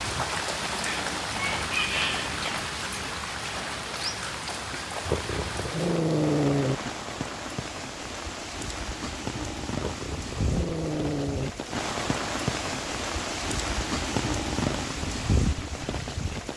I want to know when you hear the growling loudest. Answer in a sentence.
The loudest moment of the growling is at 6 seconds.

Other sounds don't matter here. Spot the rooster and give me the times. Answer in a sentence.
You can hear the rooster from 1.4 to 2.6 s.